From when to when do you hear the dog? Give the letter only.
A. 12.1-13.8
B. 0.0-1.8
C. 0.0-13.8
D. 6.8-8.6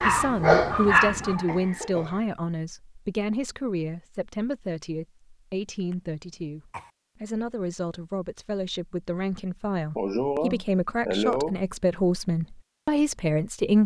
B.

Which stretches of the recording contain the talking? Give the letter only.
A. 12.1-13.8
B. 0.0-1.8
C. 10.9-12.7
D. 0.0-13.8
D.